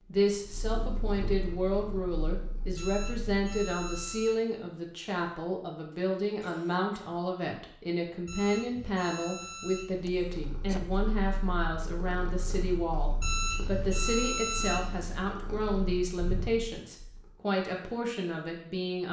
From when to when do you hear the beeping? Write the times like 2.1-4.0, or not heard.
2.8-4.5, 8.2-10.1, 13.2-15.2.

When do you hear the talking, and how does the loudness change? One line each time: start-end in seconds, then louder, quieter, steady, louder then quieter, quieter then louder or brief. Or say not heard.
0.1-19.0 steady.